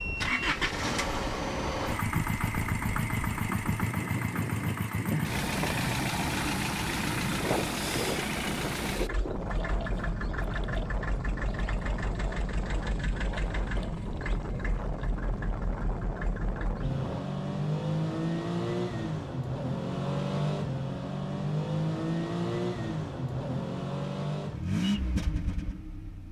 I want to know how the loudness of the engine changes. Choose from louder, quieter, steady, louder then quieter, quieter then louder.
quieter then louder.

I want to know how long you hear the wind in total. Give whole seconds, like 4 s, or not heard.
17 s.